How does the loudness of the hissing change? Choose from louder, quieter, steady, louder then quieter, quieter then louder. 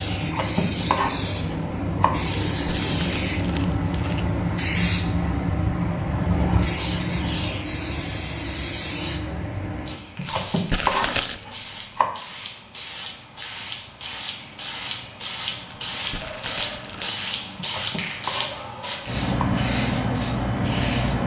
quieter then louder.